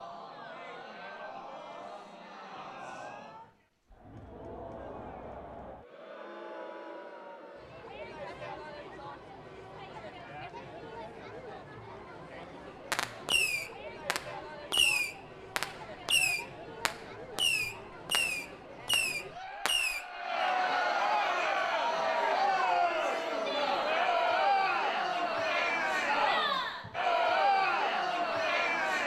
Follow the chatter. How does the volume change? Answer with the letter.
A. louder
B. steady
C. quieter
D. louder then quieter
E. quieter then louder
A.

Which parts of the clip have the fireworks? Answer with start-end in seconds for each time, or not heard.
12.9-20.6.